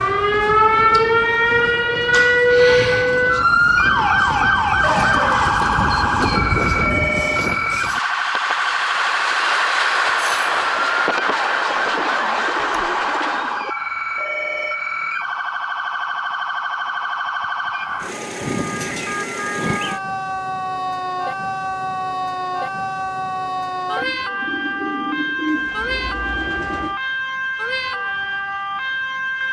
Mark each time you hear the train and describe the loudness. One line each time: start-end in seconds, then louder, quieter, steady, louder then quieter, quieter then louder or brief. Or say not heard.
0.0-13.7 louder.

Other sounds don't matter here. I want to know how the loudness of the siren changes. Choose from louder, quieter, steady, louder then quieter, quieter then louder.
quieter.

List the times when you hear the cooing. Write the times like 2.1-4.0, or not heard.
4.8-6.5, 11.9-13.7, 24.0-27.0.